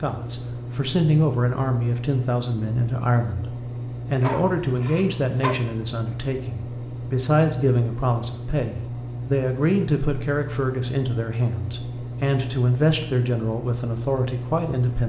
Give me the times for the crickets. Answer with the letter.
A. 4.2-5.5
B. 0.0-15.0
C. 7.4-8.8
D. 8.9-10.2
B.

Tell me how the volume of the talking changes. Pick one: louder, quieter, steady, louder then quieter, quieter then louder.
steady.